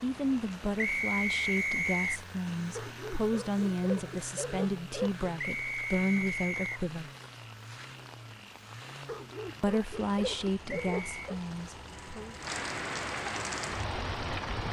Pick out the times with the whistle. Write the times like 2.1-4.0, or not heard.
0.8-2.2, 5.3-6.8, 10.7-11.2.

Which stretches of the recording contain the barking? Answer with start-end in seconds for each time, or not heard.
2.8-5.2, 9.1-11.3.